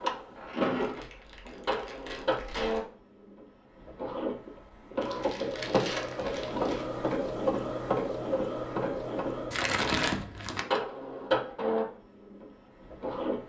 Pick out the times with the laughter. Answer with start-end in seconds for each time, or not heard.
not heard.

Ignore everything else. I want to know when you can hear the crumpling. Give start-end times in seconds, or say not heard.
0.8-2.8, 5.0-6.8, 9.5-10.7.